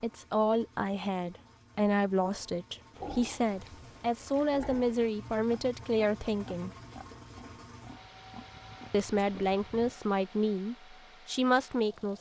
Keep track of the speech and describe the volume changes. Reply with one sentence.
The loudness of the speech stays about the same.